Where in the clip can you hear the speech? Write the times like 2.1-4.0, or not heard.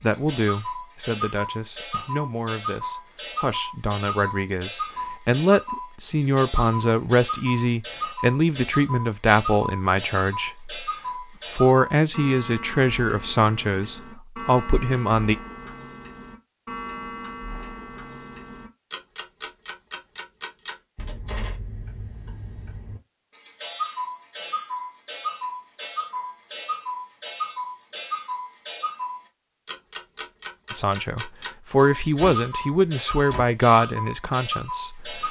0.0-10.8, 11.5-15.3, 30.7-35.2.